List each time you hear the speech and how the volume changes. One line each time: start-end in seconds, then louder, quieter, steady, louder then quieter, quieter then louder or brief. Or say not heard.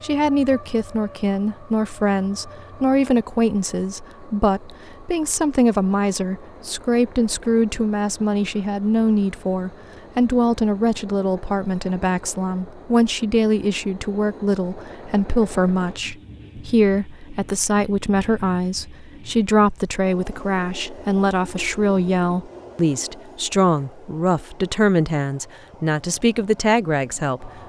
0.0-27.5 steady.